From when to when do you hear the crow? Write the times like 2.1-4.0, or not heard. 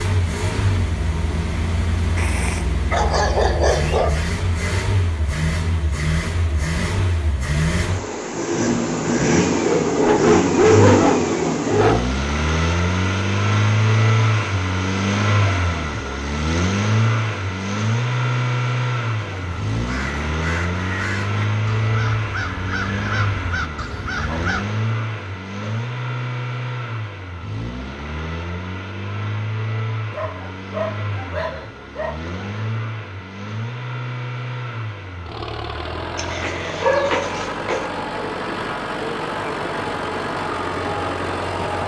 19.2-24.6.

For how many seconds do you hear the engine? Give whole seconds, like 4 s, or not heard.
42 s.